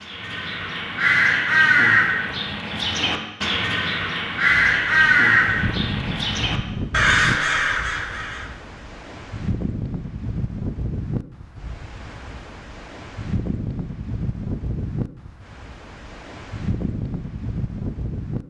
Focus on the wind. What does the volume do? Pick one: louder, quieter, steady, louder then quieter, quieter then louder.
steady.